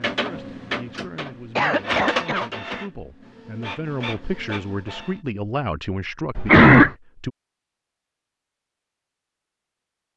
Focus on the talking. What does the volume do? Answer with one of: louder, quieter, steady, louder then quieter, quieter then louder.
louder.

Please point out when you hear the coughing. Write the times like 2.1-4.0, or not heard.
1.6-2.9, 6.3-6.9.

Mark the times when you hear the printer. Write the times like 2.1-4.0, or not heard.
0.0-5.2.